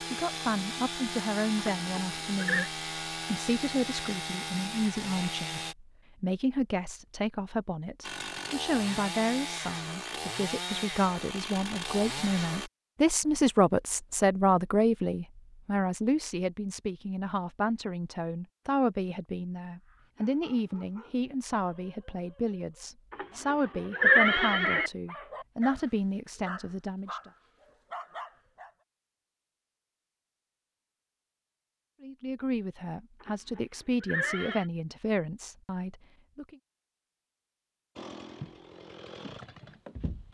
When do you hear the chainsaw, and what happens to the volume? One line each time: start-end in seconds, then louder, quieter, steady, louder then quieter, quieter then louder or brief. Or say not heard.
0.0-5.8 steady
8.0-12.7 steady
38.0-40.2 brief.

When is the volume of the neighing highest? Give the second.
24 s.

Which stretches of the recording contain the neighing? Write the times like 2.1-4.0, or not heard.
1.6-2.7, 23.1-24.9, 33.2-34.6.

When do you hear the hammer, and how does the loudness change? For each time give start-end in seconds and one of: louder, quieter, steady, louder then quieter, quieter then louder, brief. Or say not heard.
not heard.